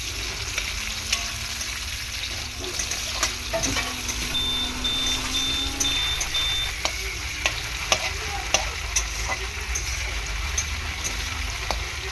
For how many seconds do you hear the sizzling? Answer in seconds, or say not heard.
12 s.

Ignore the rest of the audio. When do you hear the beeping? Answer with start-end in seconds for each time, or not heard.
4.3-6.8.